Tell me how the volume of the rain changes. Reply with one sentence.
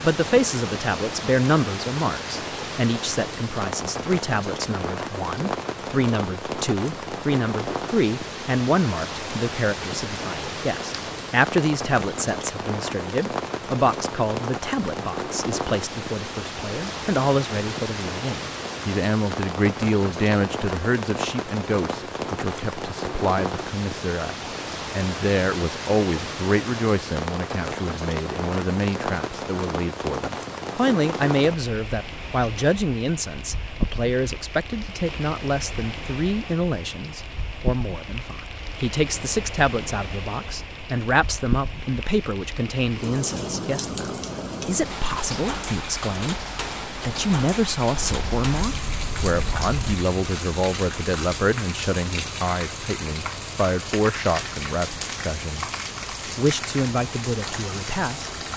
The loudness of the rain stays about the same.